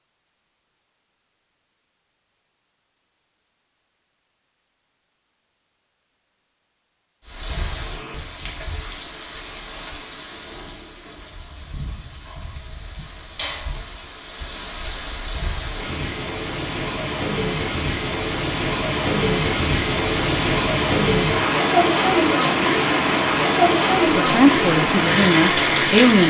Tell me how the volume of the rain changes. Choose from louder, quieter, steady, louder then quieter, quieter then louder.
louder.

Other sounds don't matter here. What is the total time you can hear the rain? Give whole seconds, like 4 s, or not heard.
19 s.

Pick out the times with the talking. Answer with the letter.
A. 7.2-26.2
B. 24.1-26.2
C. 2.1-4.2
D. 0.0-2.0
B.